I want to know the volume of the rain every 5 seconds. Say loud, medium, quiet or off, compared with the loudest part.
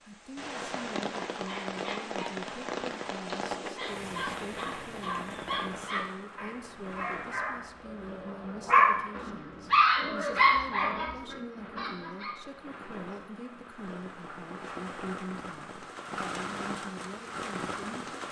loud, medium, medium, loud.